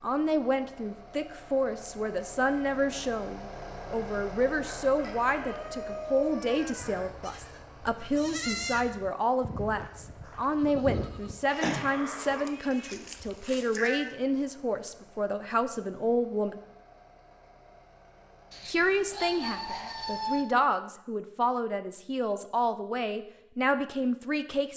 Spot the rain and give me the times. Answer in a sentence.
The rain can't be heard in this clip.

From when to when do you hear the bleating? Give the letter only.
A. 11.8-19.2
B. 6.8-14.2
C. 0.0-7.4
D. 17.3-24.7
B.